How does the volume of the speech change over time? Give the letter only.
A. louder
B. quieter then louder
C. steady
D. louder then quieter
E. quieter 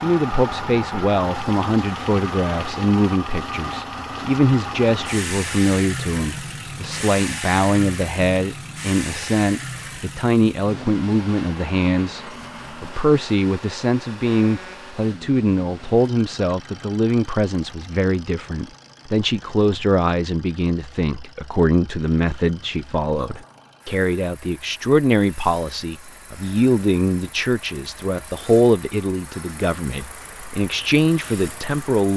C.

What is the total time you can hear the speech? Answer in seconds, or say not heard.
32 s.